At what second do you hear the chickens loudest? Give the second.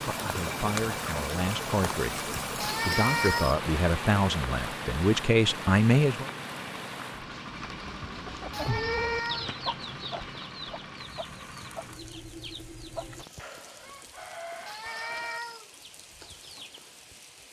9 s.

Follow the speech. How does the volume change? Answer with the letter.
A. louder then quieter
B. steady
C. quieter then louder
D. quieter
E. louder
E.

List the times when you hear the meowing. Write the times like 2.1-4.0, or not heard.
2.6-3.6, 8.5-9.6, 14.7-15.7.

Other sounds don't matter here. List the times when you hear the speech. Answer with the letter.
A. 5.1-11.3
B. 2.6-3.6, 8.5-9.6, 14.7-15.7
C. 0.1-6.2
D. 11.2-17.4
C.